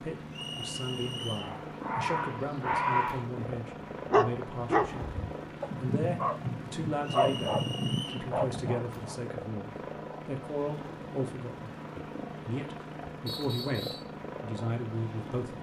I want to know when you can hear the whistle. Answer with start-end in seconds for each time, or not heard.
0.3-1.6, 7.0-8.2, 13.2-14.1.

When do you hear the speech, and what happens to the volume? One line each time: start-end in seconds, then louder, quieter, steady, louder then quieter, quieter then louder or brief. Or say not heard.
0.0-15.5 steady.